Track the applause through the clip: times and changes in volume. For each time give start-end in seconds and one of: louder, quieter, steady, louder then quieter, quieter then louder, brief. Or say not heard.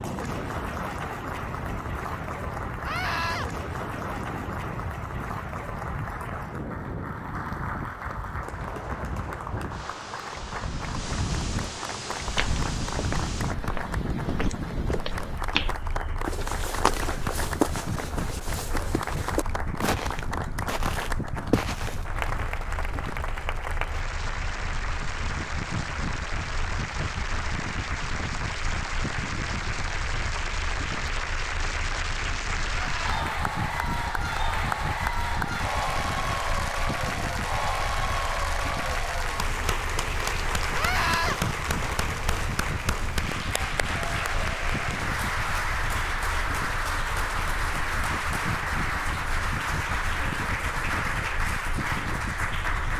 0.0-52.9 louder.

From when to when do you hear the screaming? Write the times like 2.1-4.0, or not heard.
2.8-3.5, 32.8-33.2, 40.7-41.4.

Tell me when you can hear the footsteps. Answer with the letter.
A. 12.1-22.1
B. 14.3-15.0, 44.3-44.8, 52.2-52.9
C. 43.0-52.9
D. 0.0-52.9
A.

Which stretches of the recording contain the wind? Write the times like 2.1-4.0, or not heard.
0.0-52.9.